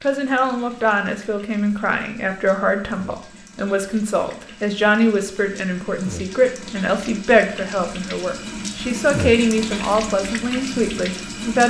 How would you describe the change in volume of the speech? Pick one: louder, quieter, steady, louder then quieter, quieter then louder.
steady.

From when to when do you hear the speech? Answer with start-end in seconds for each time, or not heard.
0.0-11.6.